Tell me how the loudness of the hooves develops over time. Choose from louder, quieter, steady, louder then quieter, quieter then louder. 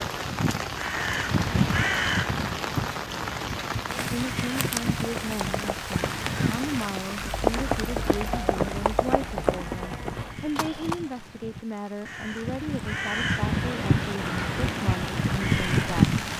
louder then quieter.